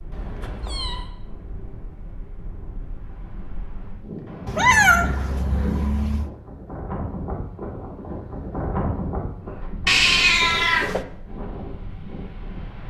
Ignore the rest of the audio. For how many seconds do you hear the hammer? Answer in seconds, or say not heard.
not heard.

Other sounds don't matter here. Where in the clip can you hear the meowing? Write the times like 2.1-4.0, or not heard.
0.1-1.1, 4.5-6.3, 9.8-11.0.